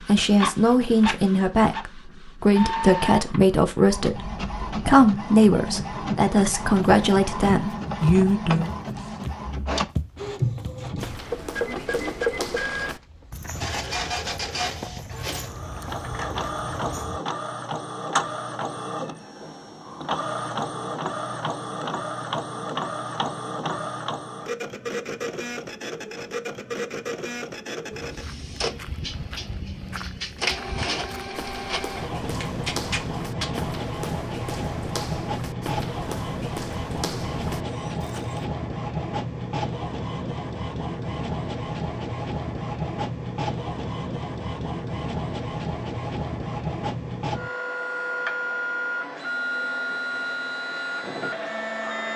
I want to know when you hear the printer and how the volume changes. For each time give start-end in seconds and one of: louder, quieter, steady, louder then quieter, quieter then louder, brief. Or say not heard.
0.0-52.1 steady.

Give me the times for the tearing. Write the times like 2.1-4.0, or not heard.
8.8-9.2, 32.4-33.5.